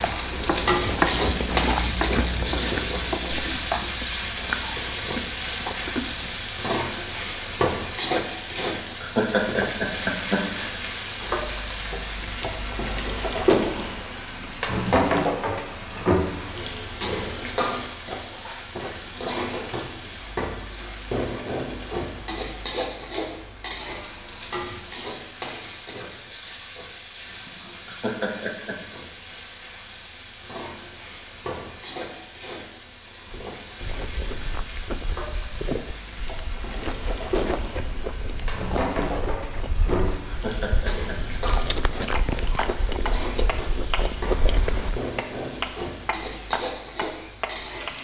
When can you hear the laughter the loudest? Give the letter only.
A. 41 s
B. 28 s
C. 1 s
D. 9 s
D.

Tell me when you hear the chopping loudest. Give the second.
1 s.